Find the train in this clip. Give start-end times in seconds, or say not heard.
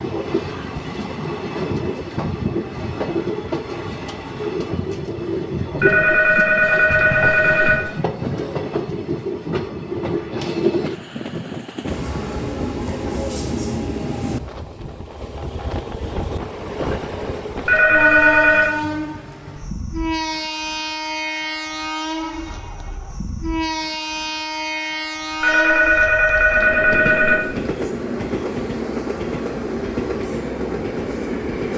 0.0-31.7.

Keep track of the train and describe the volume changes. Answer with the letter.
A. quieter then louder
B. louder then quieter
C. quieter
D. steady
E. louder
D.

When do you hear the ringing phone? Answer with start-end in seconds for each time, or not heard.
5.8-7.8, 17.6-18.7, 25.4-27.4.